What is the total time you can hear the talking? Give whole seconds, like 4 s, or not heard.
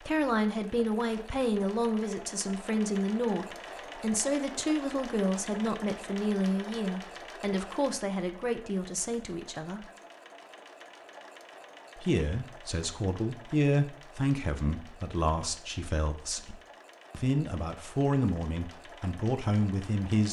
18 s.